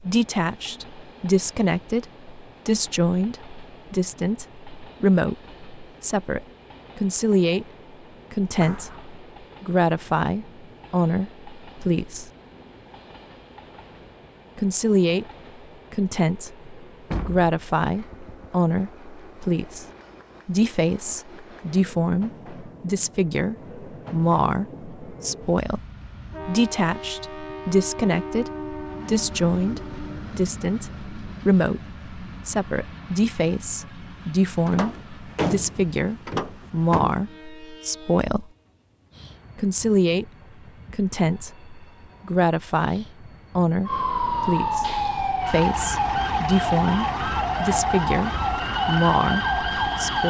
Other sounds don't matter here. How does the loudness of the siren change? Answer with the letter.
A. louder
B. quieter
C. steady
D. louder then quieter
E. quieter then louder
C.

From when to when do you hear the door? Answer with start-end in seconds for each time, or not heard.
8.6-9.2, 17.1-18.6, 34.6-37.1.